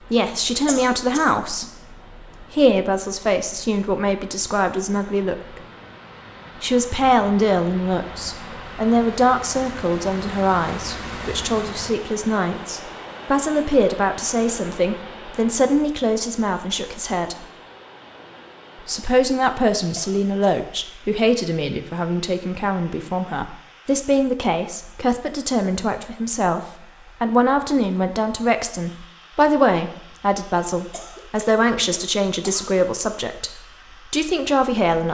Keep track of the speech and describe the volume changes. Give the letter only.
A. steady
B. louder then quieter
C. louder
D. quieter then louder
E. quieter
A.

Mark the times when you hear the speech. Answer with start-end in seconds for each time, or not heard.
0.1-5.6, 6.6-17.4, 18.9-35.0.